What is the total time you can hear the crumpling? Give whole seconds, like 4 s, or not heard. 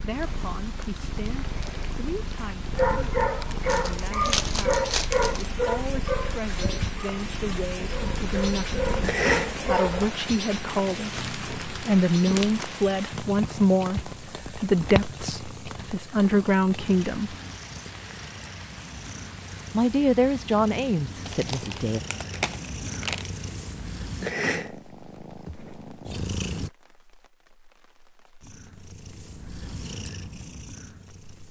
6 s.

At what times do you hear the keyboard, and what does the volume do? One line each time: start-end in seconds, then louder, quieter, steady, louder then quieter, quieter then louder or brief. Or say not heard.
not heard.